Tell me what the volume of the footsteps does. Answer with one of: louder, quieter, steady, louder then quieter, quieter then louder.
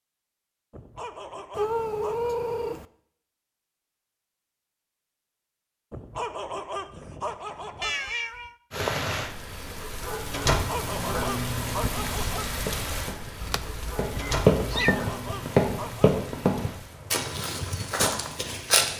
louder then quieter.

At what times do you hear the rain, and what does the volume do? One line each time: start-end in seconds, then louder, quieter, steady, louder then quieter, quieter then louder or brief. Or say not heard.
8.7-18.9 quieter.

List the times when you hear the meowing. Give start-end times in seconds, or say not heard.
1.6-2.9, 7.8-8.6, 13.4-15.0.